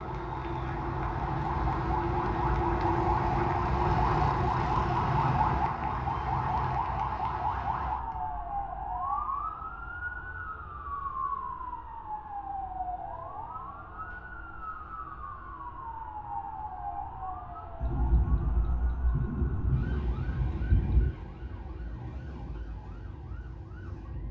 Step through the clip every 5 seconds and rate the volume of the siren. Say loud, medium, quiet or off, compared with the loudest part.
loud, loud, medium, quiet, quiet.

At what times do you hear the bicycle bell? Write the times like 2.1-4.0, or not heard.
not heard.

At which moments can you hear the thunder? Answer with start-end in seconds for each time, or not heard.
17.8-21.1.